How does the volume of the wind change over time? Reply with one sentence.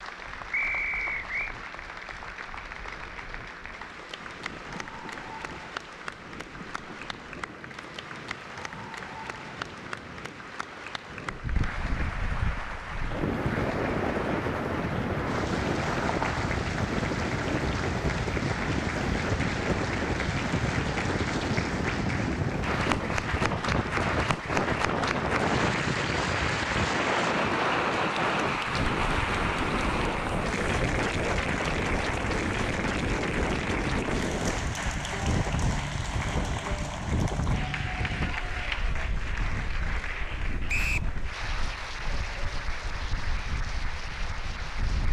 The volume of the wind goes up, then down.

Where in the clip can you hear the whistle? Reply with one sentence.
You can hear the whistle from 0.5 to 1.6 s and from 40.6 to 41.1 s.